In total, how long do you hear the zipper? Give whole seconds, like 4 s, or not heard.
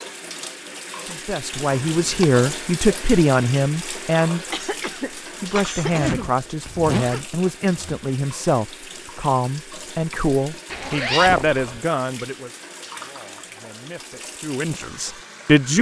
4 s.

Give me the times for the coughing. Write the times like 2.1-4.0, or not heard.
4.5-6.3.